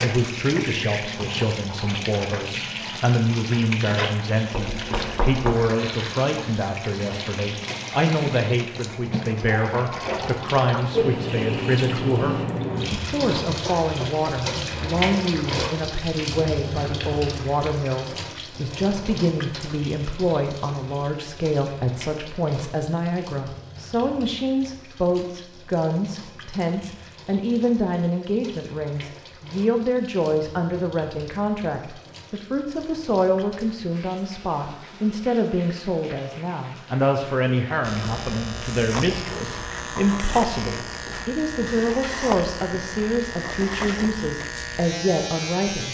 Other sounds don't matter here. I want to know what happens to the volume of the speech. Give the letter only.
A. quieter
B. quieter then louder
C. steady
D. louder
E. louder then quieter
C.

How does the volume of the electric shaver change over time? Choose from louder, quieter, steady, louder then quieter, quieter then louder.
steady.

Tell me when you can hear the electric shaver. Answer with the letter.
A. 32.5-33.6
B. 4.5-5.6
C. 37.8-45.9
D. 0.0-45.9
C.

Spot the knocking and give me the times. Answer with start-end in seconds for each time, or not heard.
4.5-5.6.